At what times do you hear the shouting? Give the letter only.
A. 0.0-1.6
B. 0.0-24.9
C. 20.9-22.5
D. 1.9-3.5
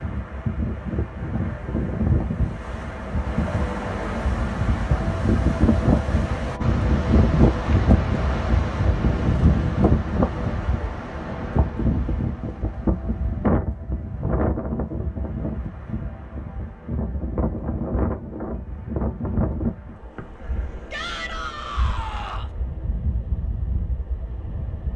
C.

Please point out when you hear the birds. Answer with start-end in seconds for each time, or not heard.
not heard.